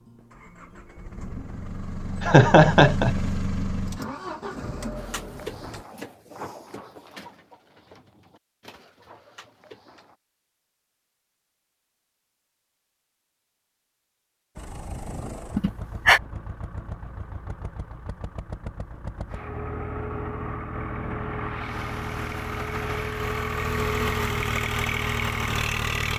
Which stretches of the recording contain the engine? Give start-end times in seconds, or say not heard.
0.0-5.8, 14.6-26.1.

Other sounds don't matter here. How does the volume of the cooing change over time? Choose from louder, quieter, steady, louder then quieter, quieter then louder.
quieter.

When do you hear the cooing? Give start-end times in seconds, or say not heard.
5.0-10.2.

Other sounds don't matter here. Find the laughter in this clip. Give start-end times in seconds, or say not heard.
2.2-3.1, 15.6-16.2.